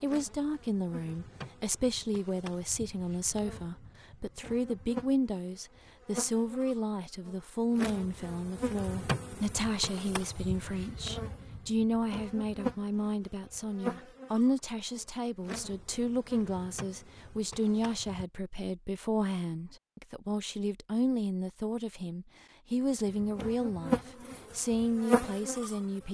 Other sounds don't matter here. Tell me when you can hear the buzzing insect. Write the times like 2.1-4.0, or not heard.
0.0-18.2, 23.1-25.8.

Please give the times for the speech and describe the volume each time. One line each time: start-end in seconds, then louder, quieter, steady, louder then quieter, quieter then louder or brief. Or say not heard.
0.0-26.0 steady.